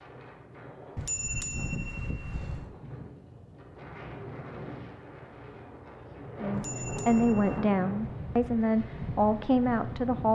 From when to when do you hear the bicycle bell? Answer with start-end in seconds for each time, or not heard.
0.9-2.7, 6.5-7.7.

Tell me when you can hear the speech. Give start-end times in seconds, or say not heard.
6.4-10.3.